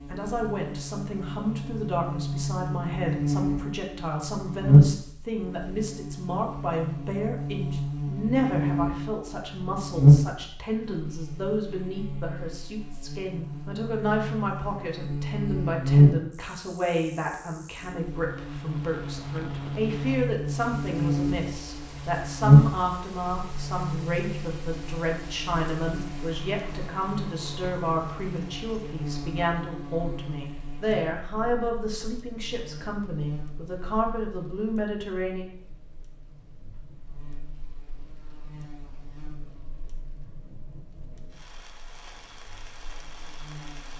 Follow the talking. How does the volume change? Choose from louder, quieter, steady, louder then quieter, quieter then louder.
steady.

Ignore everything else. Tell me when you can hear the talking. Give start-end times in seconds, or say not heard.
0.1-35.5.